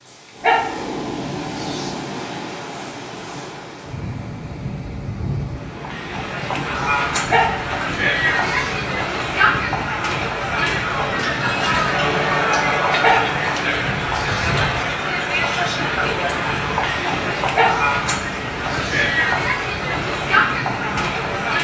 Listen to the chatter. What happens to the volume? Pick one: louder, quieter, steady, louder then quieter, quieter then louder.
steady.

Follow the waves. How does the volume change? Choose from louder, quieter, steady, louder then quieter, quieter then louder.
steady.